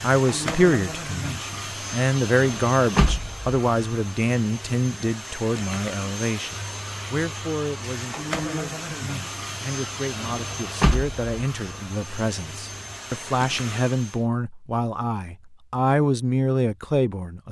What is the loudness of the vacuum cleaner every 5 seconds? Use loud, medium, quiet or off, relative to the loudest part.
loud, loud, loud, off.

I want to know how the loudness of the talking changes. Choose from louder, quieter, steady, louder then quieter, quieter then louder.
quieter then louder.